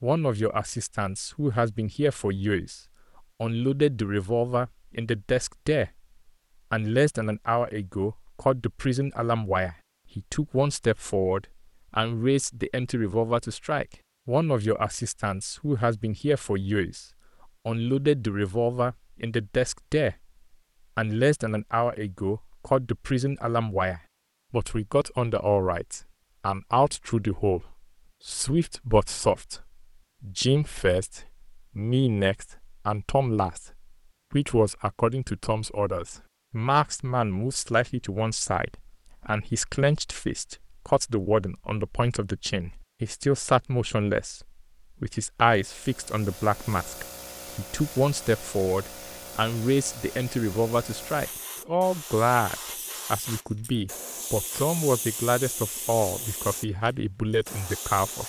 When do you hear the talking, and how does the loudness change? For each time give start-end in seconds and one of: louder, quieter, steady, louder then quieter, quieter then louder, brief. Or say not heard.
0.0-2.8 brief
3.4-5.9 brief
6.7-17.1 steady
17.6-20.1 brief
20.9-58.2 steady.